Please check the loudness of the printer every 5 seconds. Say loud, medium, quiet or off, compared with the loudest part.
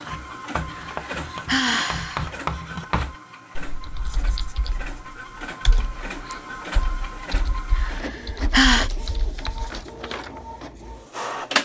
medium, medium, loud.